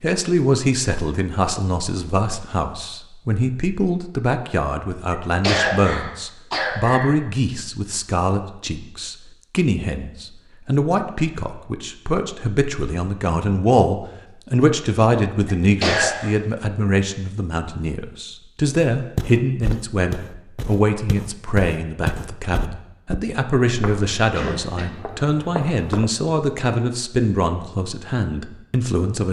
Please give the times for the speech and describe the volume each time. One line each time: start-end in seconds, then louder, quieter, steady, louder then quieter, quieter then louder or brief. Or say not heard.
0.0-29.2 steady.